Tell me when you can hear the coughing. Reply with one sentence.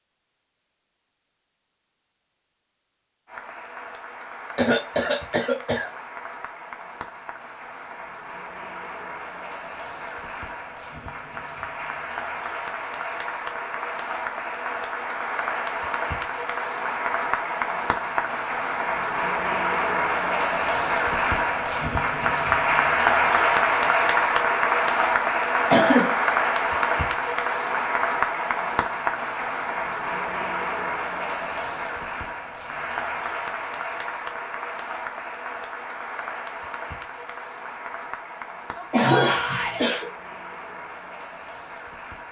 The coughing can be heard from 4.5 to 5.9 s, from 25.7 to 26.2 s and from 38.9 to 40.0 s.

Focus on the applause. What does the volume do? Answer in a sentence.
The volume of the applause goes up, then down.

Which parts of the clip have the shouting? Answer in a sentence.
The shouting can be heard from 38.8 to 39.8 s.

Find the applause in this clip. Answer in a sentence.
You can hear the applause from 3.2 to 42.2 s.